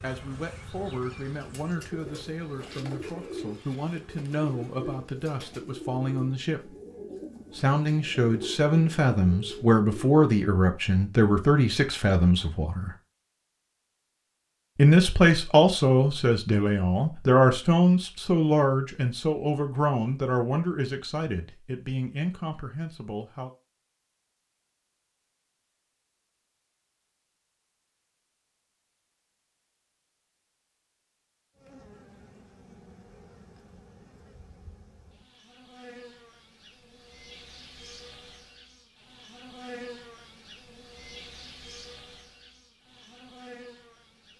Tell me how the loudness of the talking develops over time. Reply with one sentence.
The loudness of the talking goes up, then down.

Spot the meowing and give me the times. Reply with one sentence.
You can't hear the meowing here.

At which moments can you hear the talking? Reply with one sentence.
You can hear the talking from 0.0 to 6.7 s, from 7.5 to 12.9 s and from 14.8 to 23.5 s.